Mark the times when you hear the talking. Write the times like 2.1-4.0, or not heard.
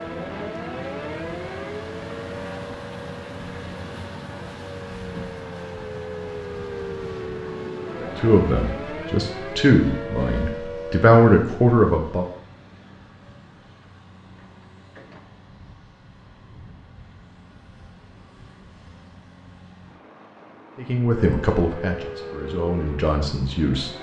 8.0-12.2, 20.8-23.9.